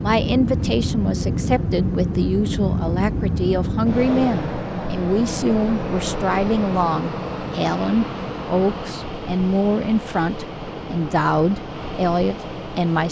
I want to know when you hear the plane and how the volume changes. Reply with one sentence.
You can hear the plane from 0.0 to 13.0 s, getting quieter.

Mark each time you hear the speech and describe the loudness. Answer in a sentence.
You can hear the speech from 0.0 to 13.0 s, at a steady volume.